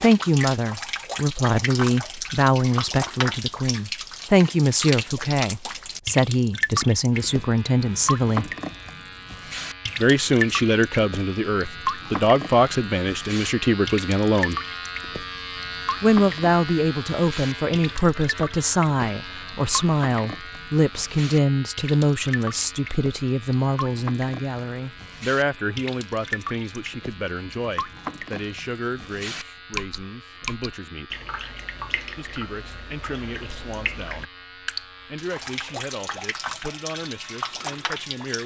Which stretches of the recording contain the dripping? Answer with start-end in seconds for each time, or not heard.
0.0-38.4.